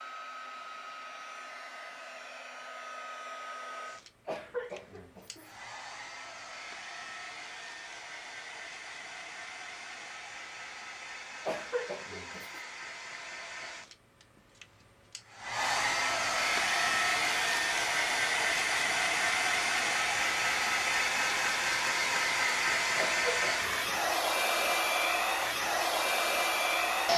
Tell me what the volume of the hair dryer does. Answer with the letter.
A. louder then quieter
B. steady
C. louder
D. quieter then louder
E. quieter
C.